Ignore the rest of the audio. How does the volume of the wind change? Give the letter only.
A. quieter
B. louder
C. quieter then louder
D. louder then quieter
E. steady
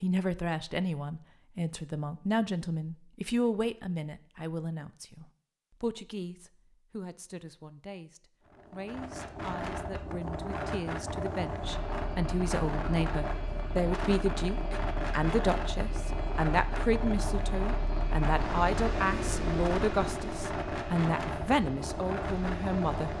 E.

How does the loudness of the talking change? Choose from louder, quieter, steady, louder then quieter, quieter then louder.
quieter then louder.